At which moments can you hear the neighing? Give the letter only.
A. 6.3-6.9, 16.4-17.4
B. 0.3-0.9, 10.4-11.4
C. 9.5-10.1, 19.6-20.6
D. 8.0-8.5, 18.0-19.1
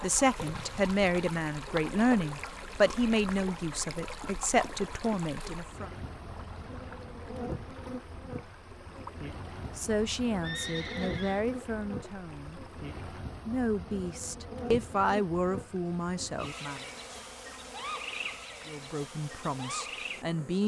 B.